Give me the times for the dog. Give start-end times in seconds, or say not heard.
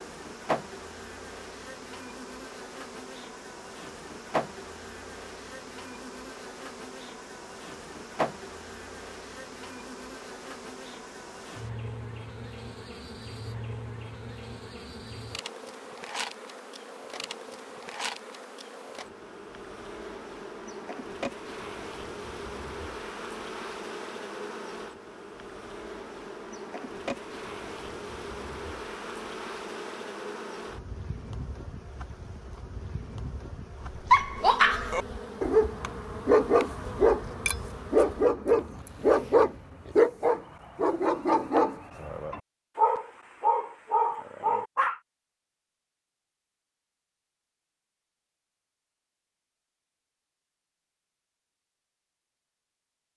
34.1-45.0.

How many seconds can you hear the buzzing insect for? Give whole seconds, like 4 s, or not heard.
40 s.